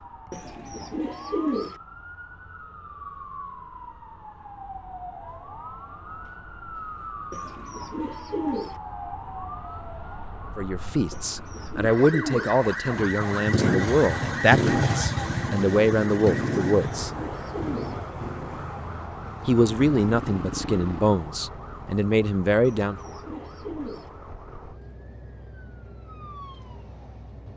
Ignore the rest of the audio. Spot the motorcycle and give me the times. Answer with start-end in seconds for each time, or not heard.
12.8-21.2.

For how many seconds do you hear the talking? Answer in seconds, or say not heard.
10 s.